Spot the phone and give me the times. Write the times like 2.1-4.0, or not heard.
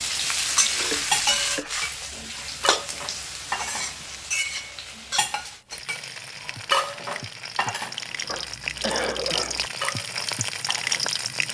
not heard.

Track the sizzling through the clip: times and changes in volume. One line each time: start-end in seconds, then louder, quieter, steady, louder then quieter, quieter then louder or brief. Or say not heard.
0.0-11.4 quieter then louder.